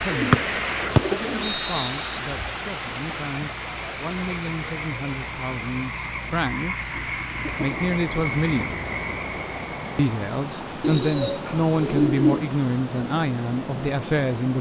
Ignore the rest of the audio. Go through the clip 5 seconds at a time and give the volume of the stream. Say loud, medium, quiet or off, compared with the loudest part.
loud, medium, medium.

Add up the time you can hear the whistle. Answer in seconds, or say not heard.
2 s.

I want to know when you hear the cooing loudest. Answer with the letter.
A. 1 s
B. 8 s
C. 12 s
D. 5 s
C.